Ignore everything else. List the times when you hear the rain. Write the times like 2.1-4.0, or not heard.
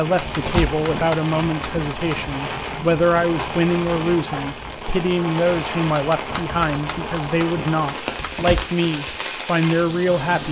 0.0-10.4.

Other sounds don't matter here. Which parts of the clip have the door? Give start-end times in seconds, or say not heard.
0.2-0.8, 8.2-8.7.